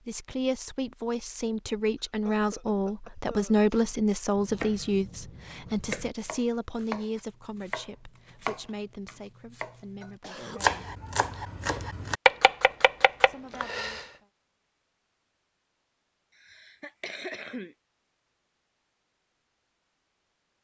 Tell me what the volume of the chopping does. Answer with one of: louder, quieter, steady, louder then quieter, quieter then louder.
louder.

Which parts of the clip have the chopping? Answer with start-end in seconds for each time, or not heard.
3.7-14.0.